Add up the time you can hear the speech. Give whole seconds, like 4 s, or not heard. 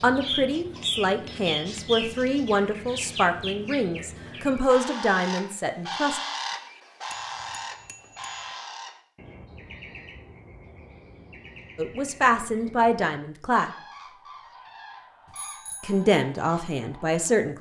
10 s.